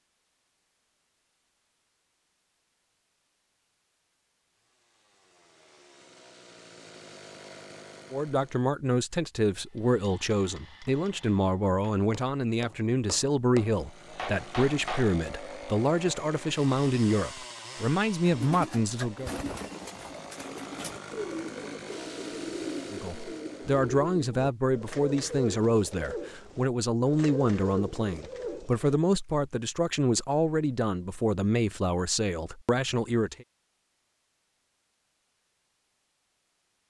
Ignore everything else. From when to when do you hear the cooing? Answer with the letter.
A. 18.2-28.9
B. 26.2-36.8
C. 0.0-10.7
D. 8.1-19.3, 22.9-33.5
A.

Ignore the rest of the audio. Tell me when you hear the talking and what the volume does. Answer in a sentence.
You can hear the talking from 8.1 to 19.3 s, at a steady volume; and from 22.9 to 33.5 s, at a steady volume.